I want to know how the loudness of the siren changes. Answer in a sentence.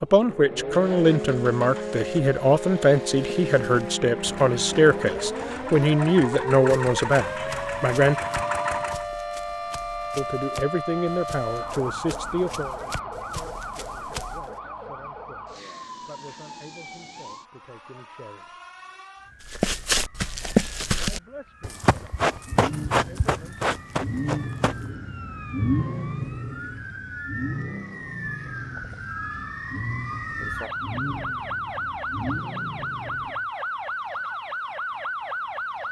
The loudness of the siren goes down, then up.